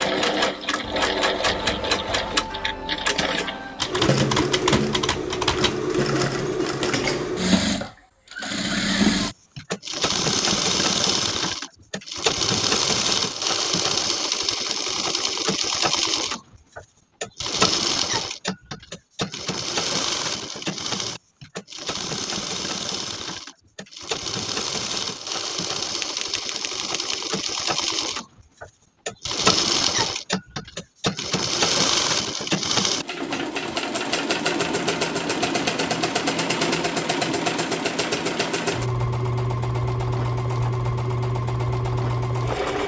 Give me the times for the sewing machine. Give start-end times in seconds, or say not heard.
0.0-42.8.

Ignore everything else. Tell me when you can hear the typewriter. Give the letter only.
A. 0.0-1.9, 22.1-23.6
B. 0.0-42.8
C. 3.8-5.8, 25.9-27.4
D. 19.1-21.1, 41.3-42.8
C.